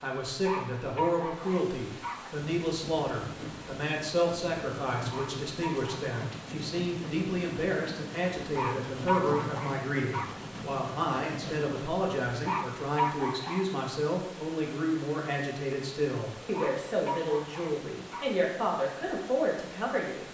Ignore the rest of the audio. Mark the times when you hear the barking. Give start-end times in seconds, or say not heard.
0.3-2.3, 5.0-6.3, 8.4-10.4, 12.2-13.7, 16.4-18.3.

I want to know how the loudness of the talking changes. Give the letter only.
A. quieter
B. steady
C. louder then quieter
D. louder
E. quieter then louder
B.